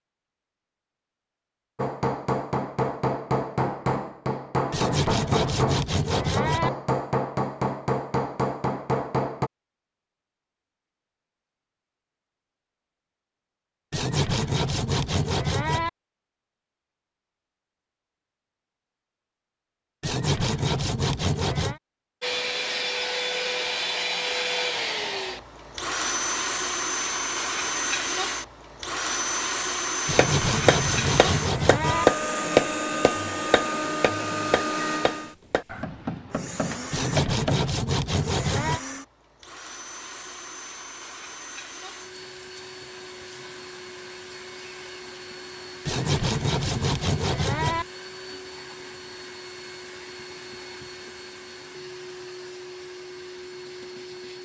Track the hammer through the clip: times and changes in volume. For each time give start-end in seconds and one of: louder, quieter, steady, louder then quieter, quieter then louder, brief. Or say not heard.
1.8-9.5 steady
30.1-37.7 louder then quieter.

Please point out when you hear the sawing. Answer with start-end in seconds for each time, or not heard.
4.7-6.7, 13.9-15.9, 20.0-21.8, 30.1-32.0, 36.9-38.8, 45.9-47.9.